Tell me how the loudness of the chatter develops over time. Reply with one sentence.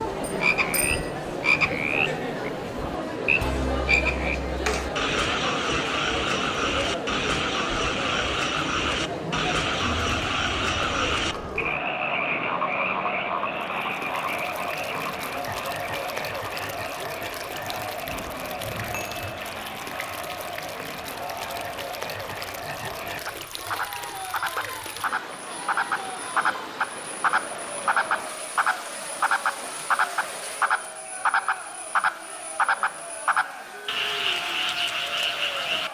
The volume of the chatter goes down.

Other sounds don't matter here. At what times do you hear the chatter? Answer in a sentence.
You can hear the chatter from 0.0 to 35.8 s.